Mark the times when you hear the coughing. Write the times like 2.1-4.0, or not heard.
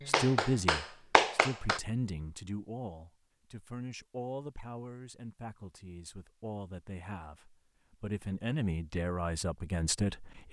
not heard.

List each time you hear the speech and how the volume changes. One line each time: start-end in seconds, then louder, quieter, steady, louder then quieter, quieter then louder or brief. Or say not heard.
0.1-10.4 quieter then louder.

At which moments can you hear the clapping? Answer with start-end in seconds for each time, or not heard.
0.0-1.8.